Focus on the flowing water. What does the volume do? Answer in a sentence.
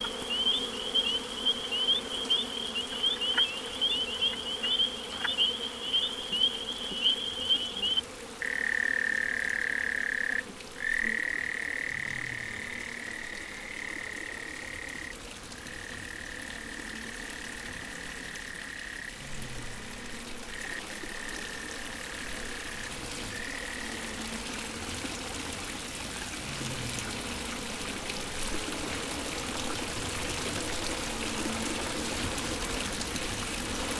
The volume of the flowing water goes up.